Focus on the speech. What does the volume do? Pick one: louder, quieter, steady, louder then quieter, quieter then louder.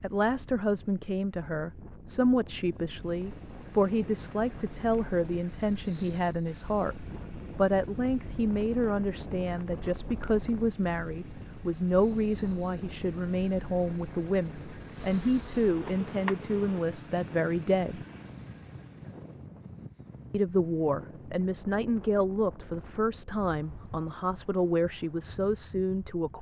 steady.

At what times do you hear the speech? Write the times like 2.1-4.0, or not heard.
0.0-7.0, 7.5-18.0, 20.3-26.3.